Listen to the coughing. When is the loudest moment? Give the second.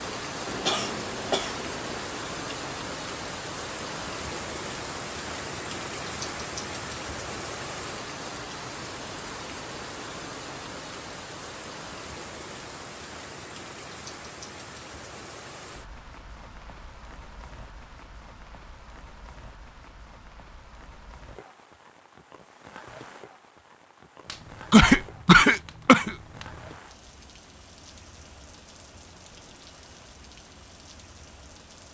25 s.